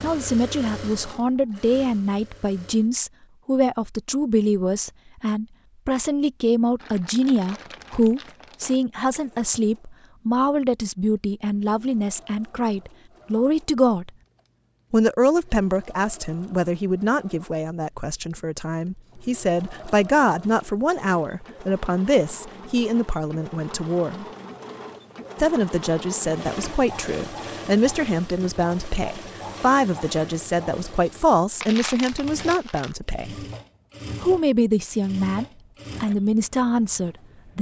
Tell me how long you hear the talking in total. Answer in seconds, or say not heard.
35 s.